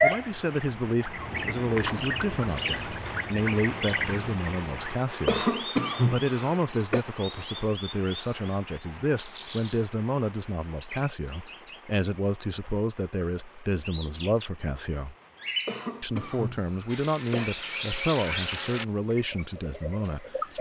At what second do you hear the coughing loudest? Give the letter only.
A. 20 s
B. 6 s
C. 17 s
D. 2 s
B.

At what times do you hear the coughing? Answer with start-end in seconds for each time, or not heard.
5.2-7.0, 15.7-17.5.